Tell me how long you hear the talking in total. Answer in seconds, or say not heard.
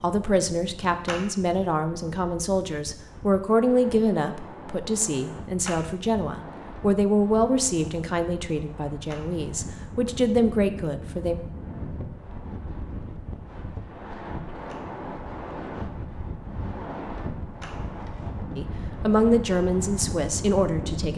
14 s.